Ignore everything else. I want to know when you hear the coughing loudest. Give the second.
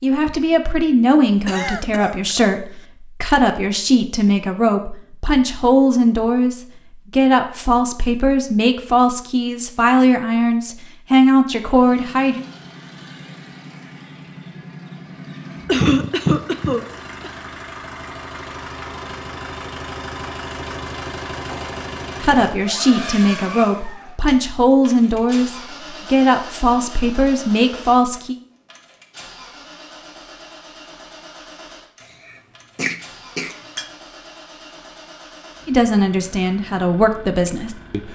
16 s.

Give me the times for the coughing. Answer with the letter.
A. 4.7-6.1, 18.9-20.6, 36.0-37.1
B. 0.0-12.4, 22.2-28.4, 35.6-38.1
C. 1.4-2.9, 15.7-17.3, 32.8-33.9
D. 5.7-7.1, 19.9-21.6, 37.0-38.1
C.